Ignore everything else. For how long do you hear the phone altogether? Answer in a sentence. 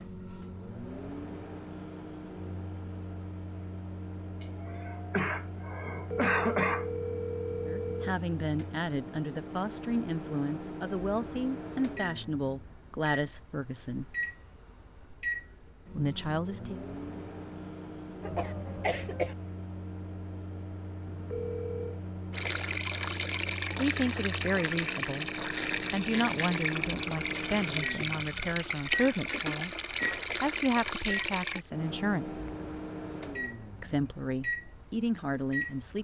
You can hear the phone for 3 seconds altogether.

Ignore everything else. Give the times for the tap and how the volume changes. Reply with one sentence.
You can hear the tap from 22.3 to 31.6 s, at a steady volume.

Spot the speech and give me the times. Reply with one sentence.
You can hear the speech from 7.7 to 14.1 s, from 15.9 to 16.8 s, from 23.8 to 29.8 s, from 30.4 to 32.5 s and from 33.8 to 35.9 s.